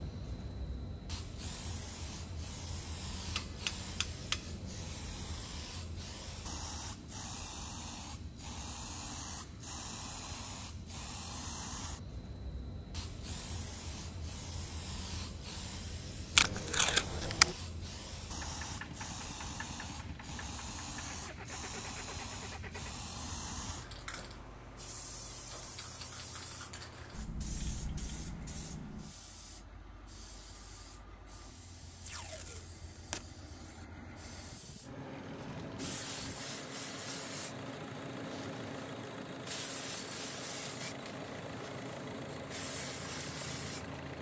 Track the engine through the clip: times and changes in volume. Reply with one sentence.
The engine can be heard from 18.4 to 44.1 s, getting quieter then louder.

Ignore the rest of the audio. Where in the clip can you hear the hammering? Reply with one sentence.
The hammering can be heard from 3.4 to 5.0 s.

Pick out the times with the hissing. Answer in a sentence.
You can hear the hissing from 0.0 to 44.1 s.